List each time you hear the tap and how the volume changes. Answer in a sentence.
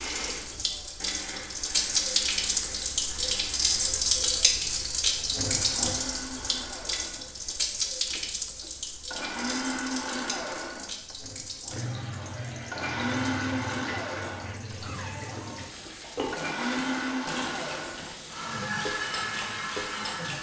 The tap can be heard from 0.0 to 20.3 s, getting quieter.